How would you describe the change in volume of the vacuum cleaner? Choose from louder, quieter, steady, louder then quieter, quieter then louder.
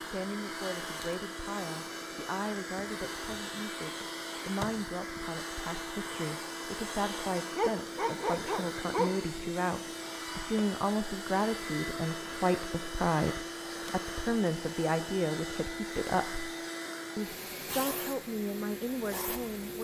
steady.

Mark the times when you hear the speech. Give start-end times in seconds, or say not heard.
0.0-16.5, 17.1-19.7.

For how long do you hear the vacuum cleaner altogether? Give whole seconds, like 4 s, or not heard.
20 s.